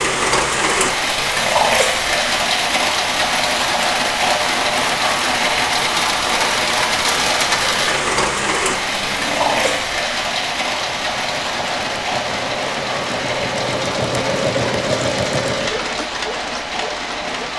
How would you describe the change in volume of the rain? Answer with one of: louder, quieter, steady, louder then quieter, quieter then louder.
quieter.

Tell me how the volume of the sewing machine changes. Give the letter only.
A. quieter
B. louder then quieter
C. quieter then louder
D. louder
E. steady
B.